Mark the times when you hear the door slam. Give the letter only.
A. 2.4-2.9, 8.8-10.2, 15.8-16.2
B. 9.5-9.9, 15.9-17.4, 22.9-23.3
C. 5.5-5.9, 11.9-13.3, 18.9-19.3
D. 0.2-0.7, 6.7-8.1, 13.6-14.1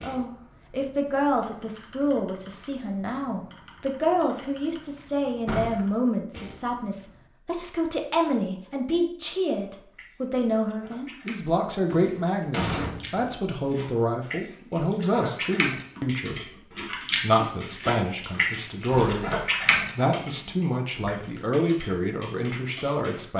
C.